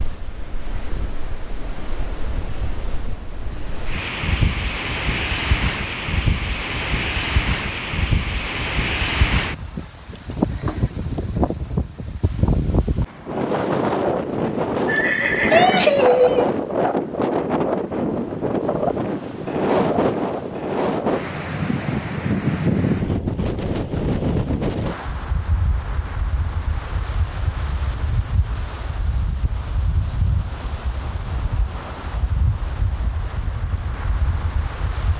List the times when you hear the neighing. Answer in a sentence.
The neighing can be heard from 14.8 to 16.6 s.